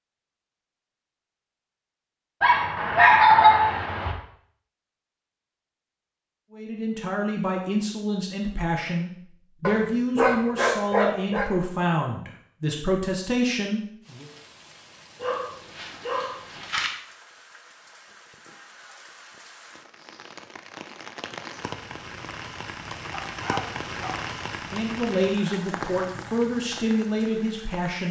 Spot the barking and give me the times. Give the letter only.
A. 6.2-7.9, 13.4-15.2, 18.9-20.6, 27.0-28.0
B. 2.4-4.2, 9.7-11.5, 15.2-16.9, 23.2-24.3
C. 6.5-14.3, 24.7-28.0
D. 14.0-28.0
B.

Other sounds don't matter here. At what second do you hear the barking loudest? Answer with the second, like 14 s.
3 s.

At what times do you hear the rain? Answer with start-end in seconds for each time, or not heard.
14.0-28.0.